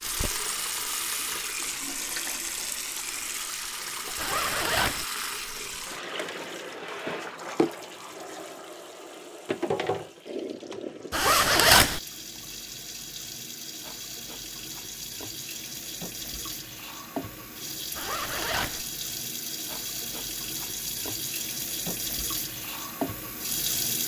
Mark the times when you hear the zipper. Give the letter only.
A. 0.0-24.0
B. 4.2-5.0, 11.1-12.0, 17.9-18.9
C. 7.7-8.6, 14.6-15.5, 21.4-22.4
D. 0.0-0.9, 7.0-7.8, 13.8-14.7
B.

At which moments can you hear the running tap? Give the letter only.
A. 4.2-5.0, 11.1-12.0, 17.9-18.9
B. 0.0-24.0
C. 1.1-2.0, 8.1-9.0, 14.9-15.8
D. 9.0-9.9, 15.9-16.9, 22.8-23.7
B.